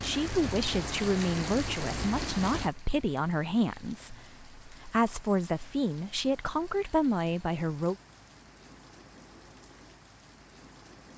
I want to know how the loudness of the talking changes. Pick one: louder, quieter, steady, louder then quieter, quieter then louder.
steady.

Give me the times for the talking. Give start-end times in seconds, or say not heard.
0.0-8.0.